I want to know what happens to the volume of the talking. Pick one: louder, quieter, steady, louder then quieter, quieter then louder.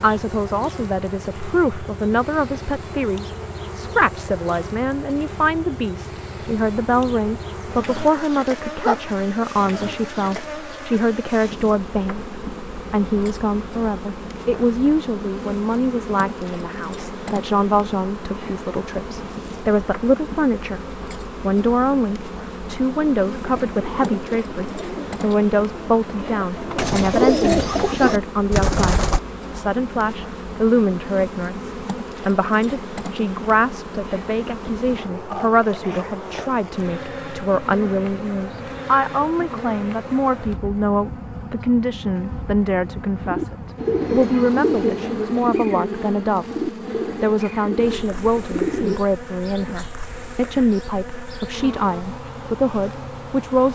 steady.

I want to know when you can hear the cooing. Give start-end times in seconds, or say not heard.
23.4-29.2, 43.2-49.0.